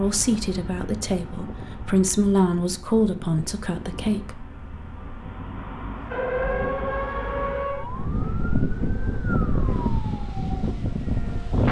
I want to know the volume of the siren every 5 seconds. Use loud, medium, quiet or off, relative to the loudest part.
off, loud, quiet.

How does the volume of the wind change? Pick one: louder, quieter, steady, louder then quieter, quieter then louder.
louder.